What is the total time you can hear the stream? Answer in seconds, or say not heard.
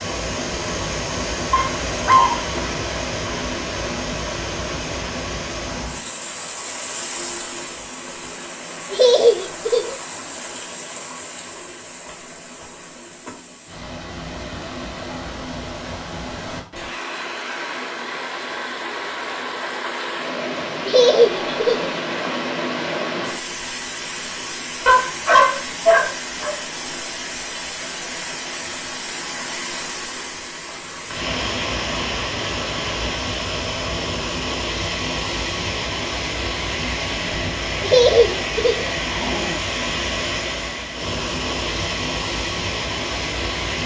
44 s.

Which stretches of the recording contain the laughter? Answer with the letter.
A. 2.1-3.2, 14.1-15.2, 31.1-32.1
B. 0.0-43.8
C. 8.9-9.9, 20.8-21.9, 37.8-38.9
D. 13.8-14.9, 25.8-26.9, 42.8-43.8
C.